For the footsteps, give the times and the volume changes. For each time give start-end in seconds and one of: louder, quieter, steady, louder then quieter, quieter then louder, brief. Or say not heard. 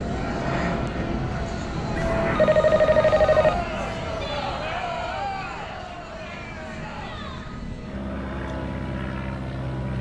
not heard.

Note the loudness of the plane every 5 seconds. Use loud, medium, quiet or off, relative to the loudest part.
loud, medium.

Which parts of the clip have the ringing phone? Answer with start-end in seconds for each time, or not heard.
1.9-3.6.